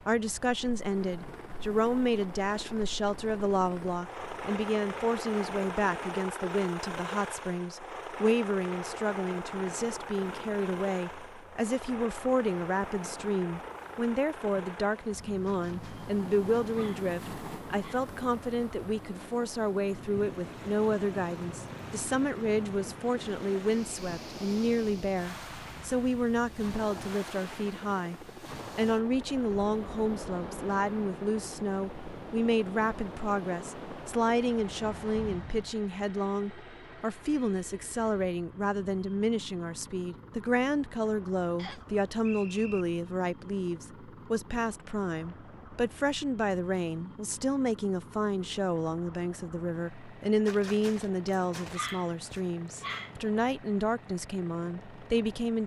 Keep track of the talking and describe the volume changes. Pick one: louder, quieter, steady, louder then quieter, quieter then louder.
steady.